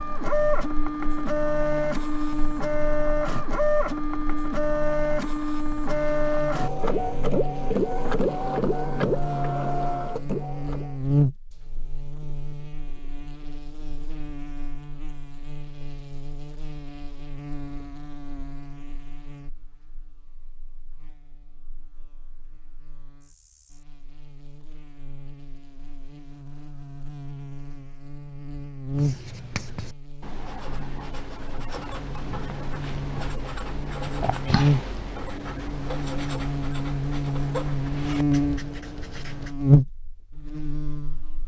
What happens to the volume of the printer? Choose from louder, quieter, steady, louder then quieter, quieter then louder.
steady.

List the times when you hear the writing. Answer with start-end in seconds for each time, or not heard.
28.9-39.5.